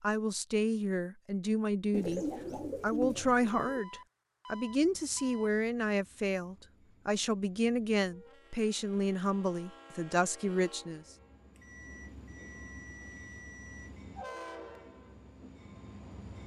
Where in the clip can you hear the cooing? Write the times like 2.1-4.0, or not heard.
1.9-3.9.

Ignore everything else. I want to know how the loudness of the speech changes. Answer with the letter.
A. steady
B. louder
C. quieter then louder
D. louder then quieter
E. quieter
A.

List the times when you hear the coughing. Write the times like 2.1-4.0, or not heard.
not heard.